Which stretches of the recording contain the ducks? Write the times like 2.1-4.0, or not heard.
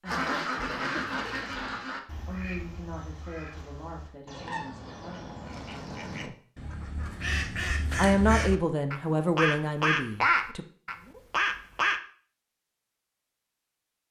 0.1-12.0.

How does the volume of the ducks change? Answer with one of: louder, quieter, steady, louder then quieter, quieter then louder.
quieter then louder.